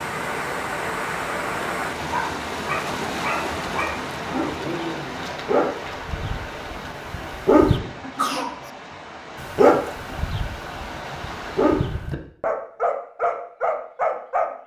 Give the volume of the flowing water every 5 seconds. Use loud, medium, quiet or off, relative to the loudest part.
loud, medium, medium.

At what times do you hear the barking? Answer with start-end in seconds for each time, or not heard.
2.1-7.8, 9.4-14.6.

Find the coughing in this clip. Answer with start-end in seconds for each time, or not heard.
8.0-8.7.